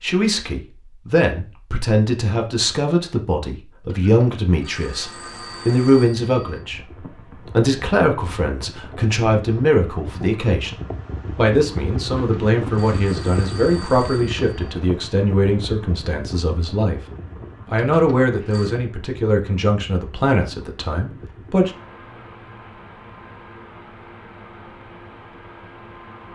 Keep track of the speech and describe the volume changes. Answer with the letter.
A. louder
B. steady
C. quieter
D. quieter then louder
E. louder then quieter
B.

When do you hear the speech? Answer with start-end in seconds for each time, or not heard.
0.0-10.8, 11.3-17.0, 17.6-21.7.